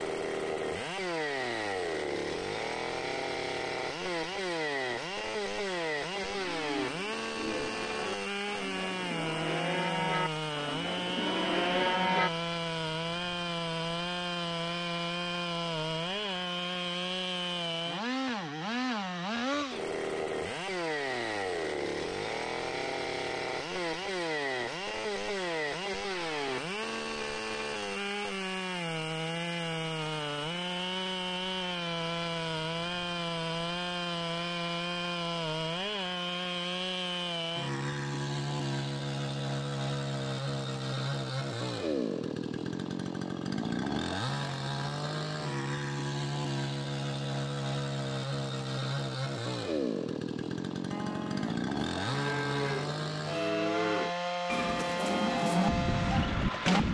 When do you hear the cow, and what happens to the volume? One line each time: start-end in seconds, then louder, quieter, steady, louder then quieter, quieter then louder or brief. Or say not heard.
6.2-12.3 louder
50.9-56.8 louder.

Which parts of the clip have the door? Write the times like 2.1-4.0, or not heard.
not heard.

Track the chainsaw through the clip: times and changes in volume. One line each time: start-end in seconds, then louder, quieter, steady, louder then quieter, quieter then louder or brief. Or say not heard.
0.0-56.8 steady.